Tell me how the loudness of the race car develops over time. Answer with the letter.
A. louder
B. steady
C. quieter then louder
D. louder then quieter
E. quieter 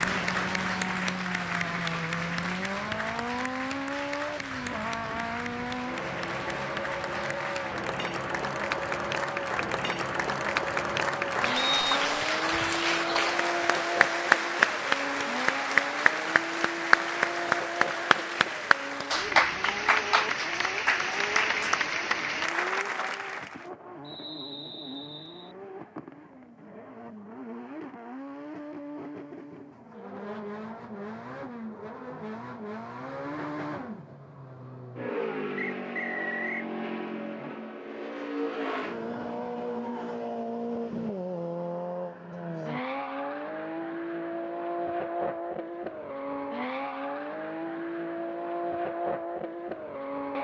C.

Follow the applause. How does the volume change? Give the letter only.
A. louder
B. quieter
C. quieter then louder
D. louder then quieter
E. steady
A.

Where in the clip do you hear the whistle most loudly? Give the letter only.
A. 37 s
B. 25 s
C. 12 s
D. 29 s
C.